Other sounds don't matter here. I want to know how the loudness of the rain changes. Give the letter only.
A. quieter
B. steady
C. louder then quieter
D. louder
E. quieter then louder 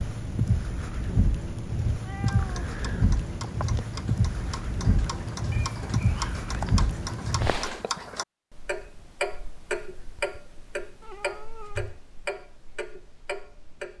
B.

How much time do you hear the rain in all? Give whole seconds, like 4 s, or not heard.
8 s.